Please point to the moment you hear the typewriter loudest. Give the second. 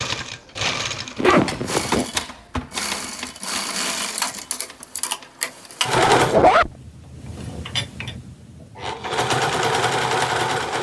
2 s.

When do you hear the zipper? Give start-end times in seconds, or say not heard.
1.1-2.0, 5.9-6.7.